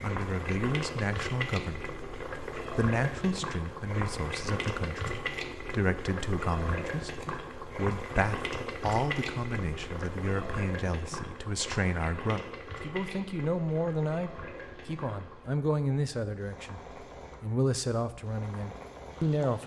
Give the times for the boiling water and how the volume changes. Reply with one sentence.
You can hear the boiling water from 0.0 to 19.6 s, getting quieter.